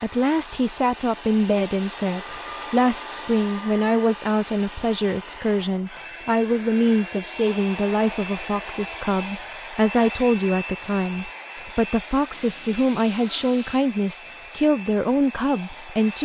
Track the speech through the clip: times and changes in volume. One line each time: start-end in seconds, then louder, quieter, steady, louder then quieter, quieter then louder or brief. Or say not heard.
0.0-16.1 steady.